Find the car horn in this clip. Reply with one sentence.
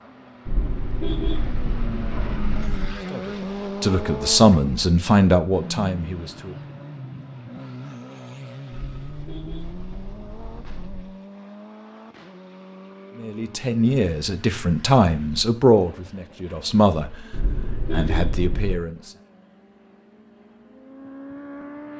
You can hear the car horn from 0.5 to 3.0 s, from 8.7 to 11.1 s and from 17.3 to 18.8 s.